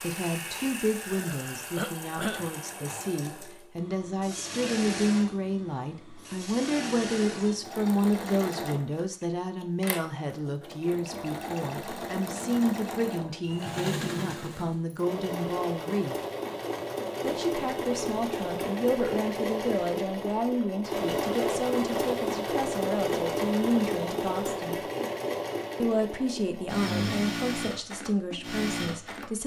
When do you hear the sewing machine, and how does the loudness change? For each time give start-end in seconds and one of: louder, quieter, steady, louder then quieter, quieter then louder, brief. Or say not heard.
0.0-29.4 louder.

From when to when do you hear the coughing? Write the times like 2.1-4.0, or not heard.
1.8-2.5.